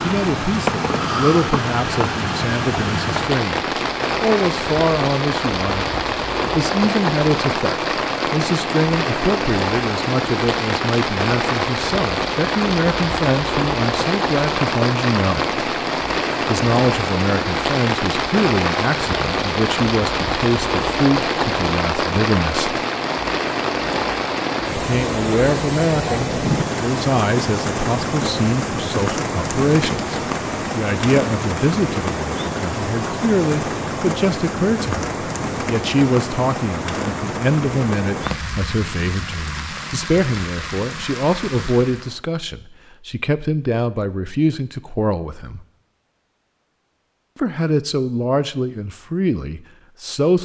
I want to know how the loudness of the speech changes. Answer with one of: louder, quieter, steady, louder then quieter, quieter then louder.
steady.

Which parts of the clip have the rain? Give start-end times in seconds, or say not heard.
0.0-42.2.